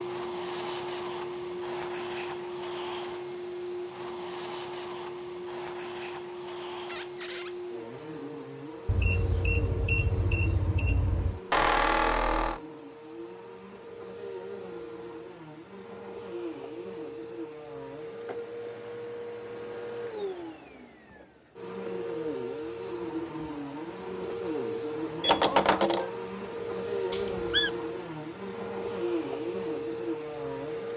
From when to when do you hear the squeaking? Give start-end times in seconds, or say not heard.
6.8-7.5, 11.5-12.6, 27.1-27.7.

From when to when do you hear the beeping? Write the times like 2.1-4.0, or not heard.
8.8-11.4, 25.2-26.1.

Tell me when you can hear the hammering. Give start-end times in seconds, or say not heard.
not heard.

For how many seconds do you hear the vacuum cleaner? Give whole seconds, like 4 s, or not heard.
31 s.